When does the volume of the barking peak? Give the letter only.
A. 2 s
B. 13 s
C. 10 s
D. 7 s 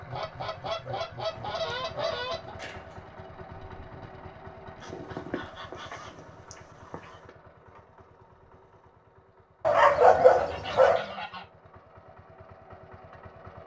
C.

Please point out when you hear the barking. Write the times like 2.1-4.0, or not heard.
0.7-3.0, 9.6-11.2.